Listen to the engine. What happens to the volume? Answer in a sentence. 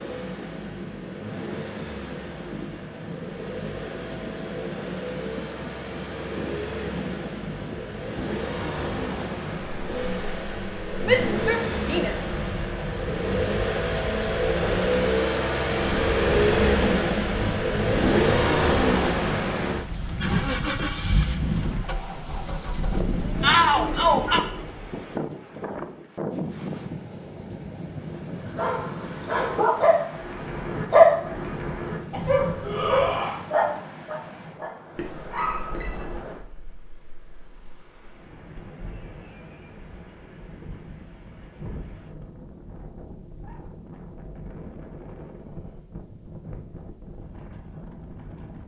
The loudness of the engine goes up, then down.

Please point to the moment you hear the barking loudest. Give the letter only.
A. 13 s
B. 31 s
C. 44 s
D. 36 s
B.